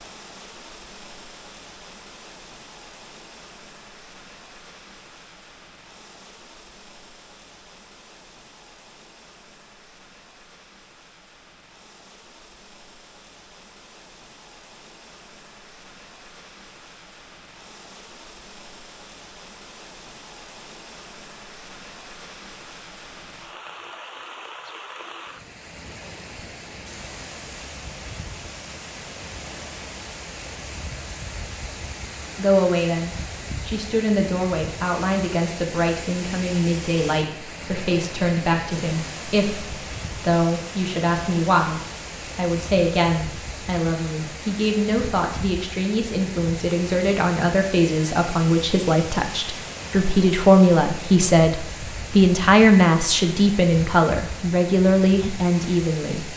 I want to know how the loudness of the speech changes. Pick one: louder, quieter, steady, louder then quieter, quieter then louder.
louder.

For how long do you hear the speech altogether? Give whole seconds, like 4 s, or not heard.
24 s.